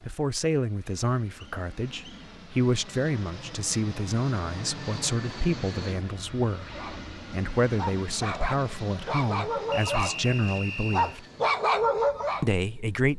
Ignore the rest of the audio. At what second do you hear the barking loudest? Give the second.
12 s.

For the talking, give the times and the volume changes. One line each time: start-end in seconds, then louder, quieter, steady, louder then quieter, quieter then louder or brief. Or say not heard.
0.1-11.2 steady
12.4-13.1 brief.